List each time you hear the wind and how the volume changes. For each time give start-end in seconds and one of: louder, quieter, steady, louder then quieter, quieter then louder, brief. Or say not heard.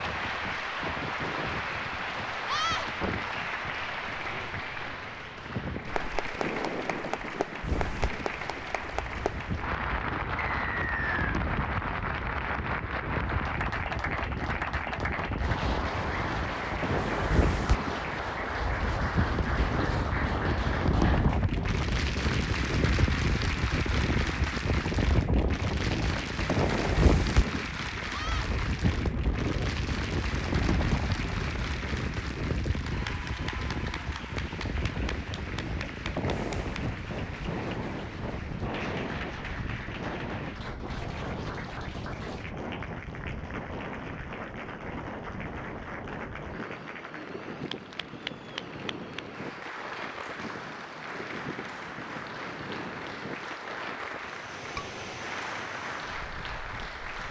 0.0-57.2 louder then quieter.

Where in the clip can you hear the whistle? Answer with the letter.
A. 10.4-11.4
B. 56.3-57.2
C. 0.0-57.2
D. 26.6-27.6
A.